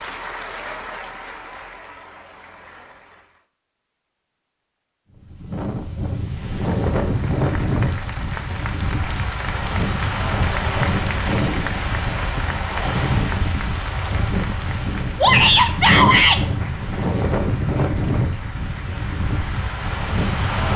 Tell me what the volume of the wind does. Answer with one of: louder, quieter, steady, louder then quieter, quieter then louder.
steady.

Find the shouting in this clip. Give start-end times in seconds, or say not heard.
15.2-16.4.